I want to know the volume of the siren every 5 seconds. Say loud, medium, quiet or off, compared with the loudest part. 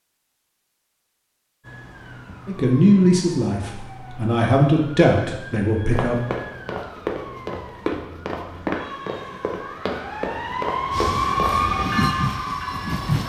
quiet, quiet, loud.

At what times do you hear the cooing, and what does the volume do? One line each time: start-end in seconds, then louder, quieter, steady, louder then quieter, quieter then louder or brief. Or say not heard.
not heard.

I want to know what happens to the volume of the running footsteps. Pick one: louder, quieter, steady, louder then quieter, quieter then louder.
steady.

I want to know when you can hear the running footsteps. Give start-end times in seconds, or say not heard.
5.9-11.8.